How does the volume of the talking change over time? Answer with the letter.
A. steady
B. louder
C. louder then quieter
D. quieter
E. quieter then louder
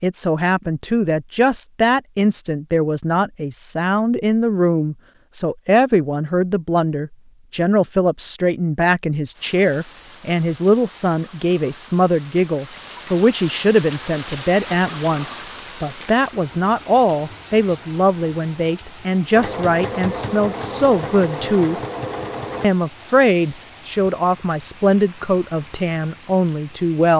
A.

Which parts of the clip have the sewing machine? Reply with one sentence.
You can hear the sewing machine from 19.3 to 22.7 s.